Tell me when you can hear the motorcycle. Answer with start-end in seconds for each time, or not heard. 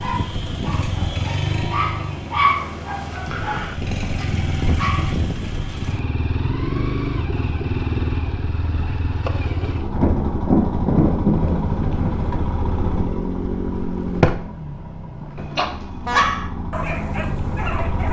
0.0-18.0.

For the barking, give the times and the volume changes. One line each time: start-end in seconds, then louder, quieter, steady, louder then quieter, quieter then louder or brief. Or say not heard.
0.0-5.2 louder then quieter
15.6-18.0 brief.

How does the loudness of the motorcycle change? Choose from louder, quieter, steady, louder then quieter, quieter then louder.
steady.